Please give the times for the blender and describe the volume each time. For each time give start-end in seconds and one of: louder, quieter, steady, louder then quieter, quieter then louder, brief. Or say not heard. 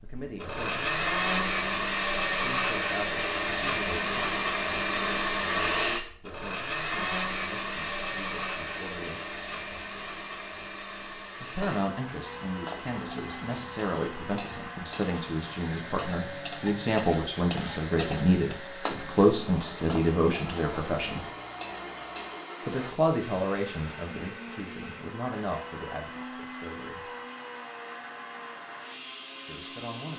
0.0-30.1 quieter.